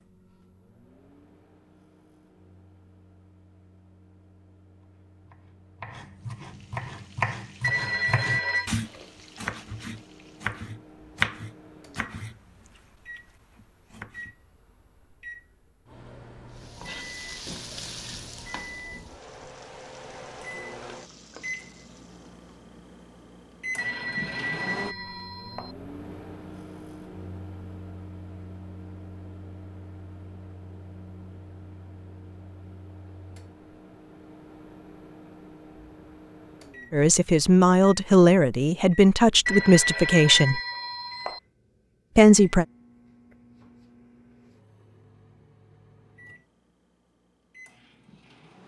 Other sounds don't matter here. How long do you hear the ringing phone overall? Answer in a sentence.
You can hear the ringing phone for 5 seconds altogether.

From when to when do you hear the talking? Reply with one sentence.
The talking can be heard from 36.9 to 40.6 s and from 42.1 to 42.6 s.